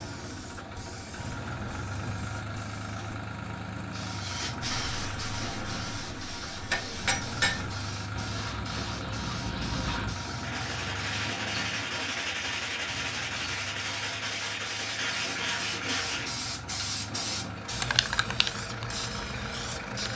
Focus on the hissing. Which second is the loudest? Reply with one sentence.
The loudest moment of the hissing is at 18 seconds.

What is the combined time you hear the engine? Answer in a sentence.
The engine can be heard for 20 seconds in total.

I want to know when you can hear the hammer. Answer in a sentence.
You can hear the hammer from 6.7 to 7.7 s.